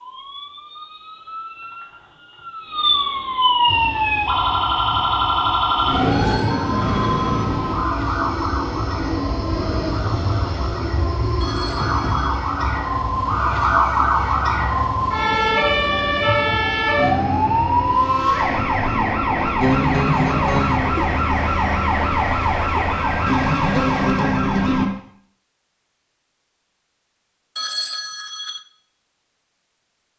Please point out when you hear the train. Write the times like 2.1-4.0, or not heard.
3.6-24.1.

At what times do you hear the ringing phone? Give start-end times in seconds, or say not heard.
6.1-7.5, 11.4-12.4, 27.6-28.6.